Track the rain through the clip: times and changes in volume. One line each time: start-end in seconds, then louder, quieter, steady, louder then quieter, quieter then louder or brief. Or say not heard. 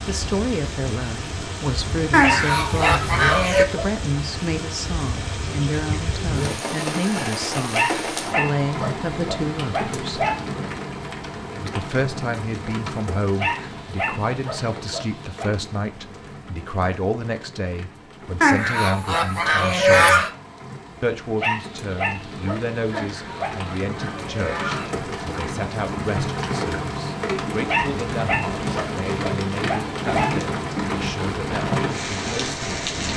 0.0-33.1 quieter then louder.